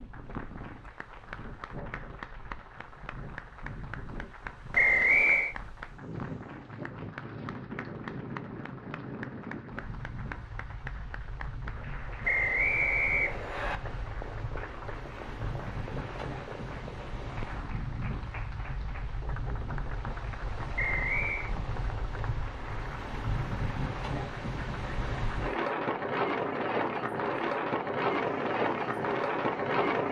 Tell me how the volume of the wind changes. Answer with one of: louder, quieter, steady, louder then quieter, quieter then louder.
louder.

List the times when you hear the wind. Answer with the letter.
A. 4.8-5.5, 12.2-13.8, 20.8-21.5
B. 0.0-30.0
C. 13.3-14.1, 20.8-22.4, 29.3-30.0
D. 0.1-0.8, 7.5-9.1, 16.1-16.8
B.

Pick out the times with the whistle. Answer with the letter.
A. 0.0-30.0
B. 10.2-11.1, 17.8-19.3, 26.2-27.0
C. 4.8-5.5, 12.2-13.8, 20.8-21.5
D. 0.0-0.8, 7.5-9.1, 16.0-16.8
C.